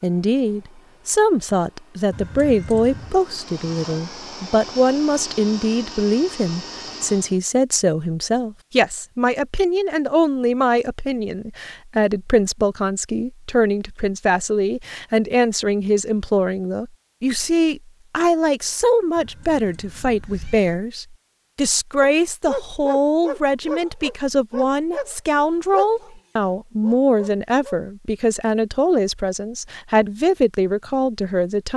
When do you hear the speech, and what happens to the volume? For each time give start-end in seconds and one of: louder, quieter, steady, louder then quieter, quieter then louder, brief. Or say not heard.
0.0-31.7 steady.